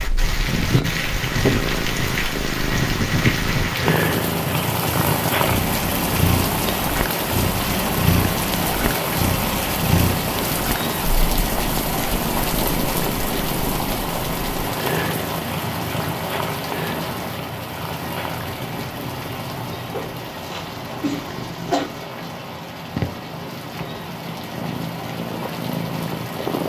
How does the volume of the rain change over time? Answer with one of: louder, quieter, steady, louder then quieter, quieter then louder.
quieter.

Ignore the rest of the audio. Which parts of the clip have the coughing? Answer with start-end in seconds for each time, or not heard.
19.9-21.9.